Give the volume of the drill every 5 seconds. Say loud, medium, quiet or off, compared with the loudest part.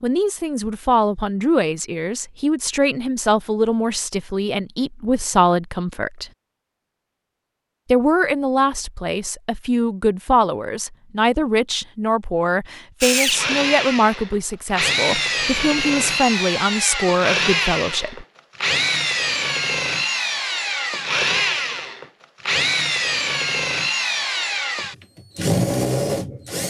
off, off, loud, loud, loud, loud.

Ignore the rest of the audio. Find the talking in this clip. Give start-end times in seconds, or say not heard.
0.0-6.3, 7.8-18.2.